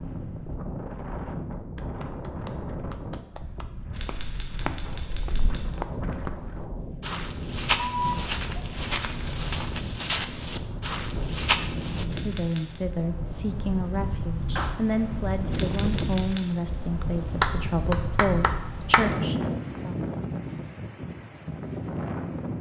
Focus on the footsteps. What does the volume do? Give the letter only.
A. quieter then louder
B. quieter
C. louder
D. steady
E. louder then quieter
C.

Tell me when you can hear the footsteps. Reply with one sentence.
The footsteps can be heard from 4.0 to 12.1 s.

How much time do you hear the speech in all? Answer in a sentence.
The speech can be heard for 8 seconds in total.